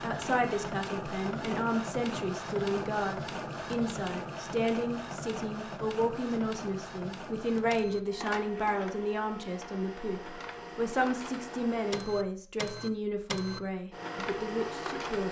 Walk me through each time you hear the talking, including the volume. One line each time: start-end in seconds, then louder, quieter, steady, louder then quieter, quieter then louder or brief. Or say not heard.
0.0-15.2 steady.